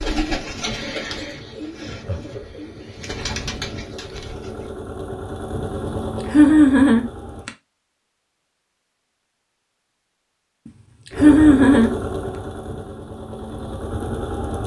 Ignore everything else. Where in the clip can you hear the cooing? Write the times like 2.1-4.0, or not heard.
0.0-4.8.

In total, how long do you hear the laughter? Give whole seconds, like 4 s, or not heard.
3 s.